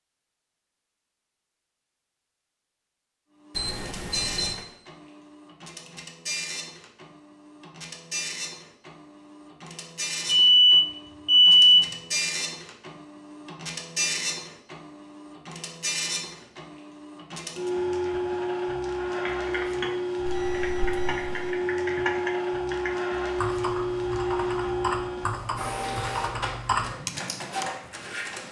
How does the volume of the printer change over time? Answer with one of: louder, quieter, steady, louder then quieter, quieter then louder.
louder.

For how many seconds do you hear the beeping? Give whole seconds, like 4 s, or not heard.
4 s.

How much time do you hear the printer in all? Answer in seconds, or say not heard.
25 s.